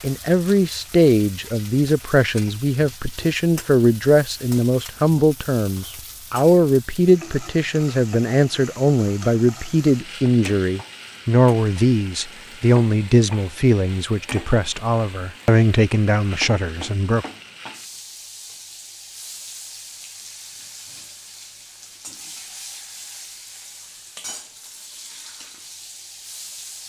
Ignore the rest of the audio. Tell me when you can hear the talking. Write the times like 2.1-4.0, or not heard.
0.0-17.2.